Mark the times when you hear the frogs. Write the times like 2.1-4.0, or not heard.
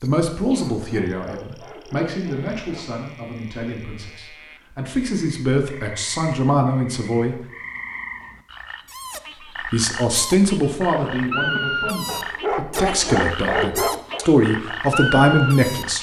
0.0-15.9.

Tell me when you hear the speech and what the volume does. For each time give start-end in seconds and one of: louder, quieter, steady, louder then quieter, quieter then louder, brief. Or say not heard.
0.0-7.3 quieter then louder
9.7-15.9 quieter then louder.